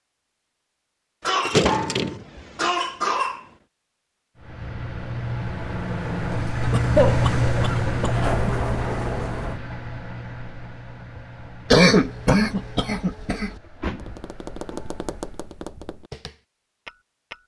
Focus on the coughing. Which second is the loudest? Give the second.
12 s.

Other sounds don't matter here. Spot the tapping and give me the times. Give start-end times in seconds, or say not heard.
13.8-17.4.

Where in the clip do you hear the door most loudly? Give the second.
2 s.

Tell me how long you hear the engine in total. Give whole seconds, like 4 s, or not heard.
11 s.